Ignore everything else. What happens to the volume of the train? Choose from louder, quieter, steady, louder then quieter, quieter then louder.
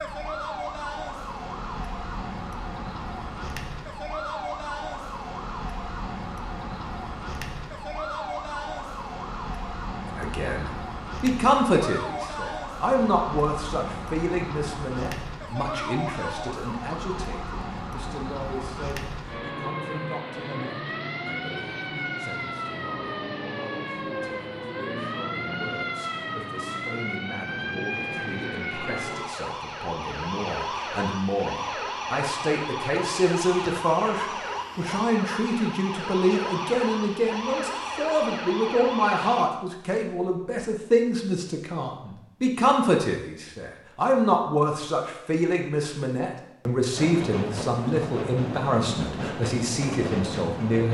steady.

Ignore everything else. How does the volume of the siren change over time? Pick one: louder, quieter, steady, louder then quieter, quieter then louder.
steady.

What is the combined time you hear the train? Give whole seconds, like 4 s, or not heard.
4 s.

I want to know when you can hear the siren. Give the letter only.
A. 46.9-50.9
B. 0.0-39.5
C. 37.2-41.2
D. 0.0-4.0
B.